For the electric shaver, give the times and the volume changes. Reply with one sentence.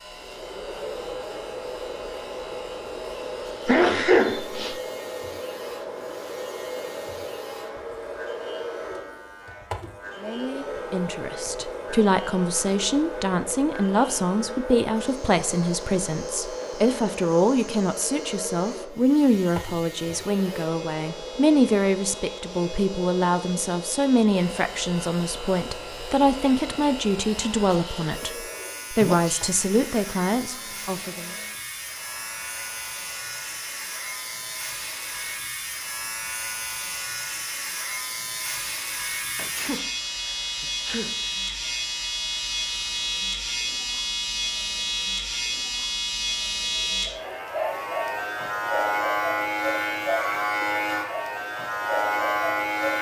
You can hear the electric shaver from 0.0 to 52.9 s, getting louder.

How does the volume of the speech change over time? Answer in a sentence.
The loudness of the speech stays about the same.